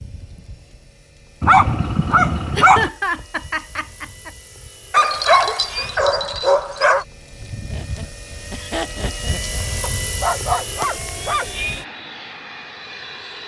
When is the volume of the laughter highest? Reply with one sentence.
The loudest moment of the laughter is at 3 seconds.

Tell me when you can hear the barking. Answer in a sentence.
You can hear the barking from 1.4 to 2.9 s, from 4.9 to 7.0 s and from 9.8 to 11.8 s.